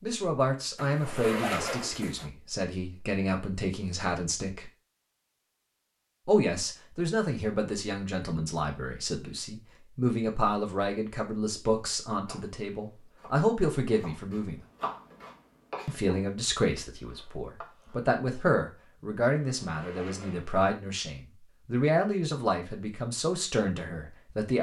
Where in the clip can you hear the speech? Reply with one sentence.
You can hear the speech from 0.0 to 4.7 s, from 6.2 to 14.6 s and from 15.8 to 24.5 s.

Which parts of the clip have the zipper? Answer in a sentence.
The zipper can be heard from 0.8 to 2.3 s and from 19.4 to 20.6 s.